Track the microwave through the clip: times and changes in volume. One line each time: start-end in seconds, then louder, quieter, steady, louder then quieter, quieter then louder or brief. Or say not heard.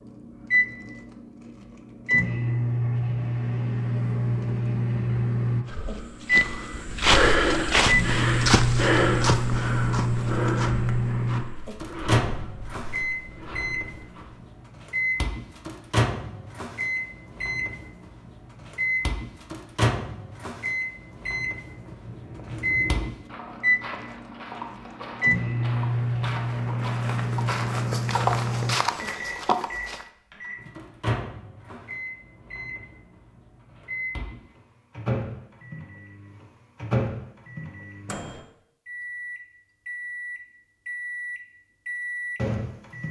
0.0-43.0 quieter.